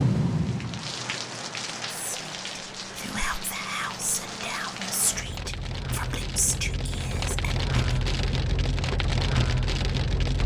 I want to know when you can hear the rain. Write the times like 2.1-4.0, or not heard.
0.0-10.4.